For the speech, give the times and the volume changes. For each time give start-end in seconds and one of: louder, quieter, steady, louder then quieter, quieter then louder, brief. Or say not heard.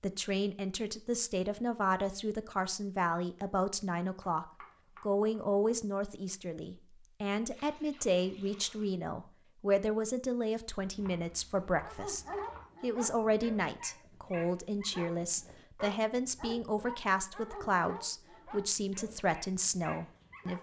0.0-20.5 steady.